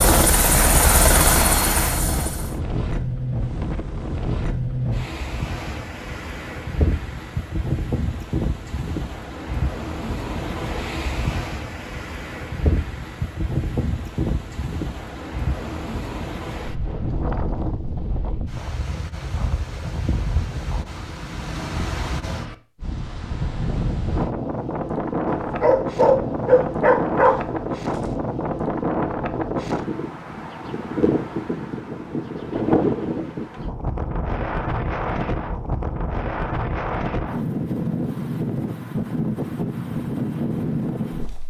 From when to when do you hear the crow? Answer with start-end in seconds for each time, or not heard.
not heard.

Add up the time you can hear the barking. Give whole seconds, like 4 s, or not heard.
3 s.